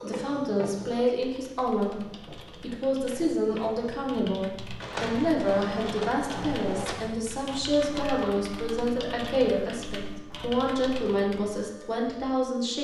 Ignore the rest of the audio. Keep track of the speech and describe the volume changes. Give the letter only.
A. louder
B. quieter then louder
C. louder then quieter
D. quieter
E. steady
E.